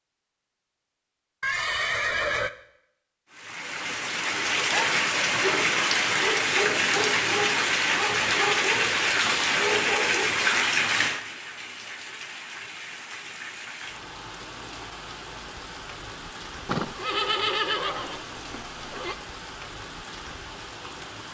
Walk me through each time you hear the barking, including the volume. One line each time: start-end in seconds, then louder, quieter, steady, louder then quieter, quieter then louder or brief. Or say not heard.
4.7-10.2 steady.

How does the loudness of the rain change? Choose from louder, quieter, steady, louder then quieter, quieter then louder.
quieter.